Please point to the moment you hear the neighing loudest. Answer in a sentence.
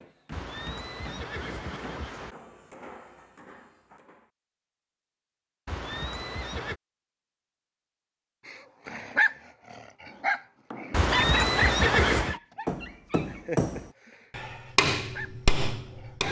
The loudest moment of the neighing is at 12 seconds.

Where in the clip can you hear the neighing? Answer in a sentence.
The neighing can be heard from 0.3 to 2.4 s, from 5.7 to 6.8 s and from 10.9 to 12.4 s.